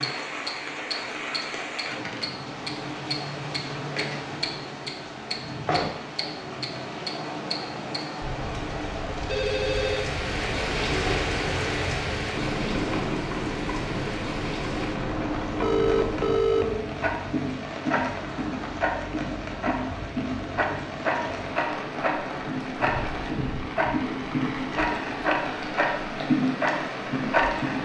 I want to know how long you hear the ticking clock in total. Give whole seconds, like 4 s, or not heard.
28 s.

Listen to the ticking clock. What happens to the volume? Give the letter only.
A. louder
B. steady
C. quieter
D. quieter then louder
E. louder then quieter
A.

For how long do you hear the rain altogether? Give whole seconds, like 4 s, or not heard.
28 s.